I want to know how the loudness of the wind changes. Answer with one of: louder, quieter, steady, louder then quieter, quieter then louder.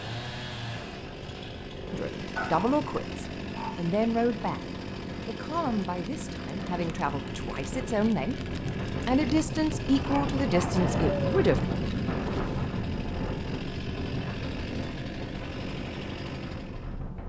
louder then quieter.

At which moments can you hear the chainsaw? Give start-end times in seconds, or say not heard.
0.0-17.1.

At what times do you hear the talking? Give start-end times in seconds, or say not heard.
1.9-4.6, 5.2-8.3, 9.1-11.6.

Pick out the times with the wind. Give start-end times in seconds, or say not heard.
0.0-17.2.